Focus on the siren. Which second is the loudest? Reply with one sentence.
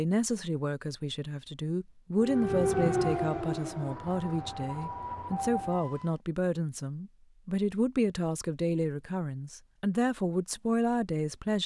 The volume of the siren peaks at 3 seconds.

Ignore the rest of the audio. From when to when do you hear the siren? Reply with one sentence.
You can hear the siren from 2.1 to 6.2 s.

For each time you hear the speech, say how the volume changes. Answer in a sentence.
You can hear the speech from 0.0 to 11.6 s, at a steady volume.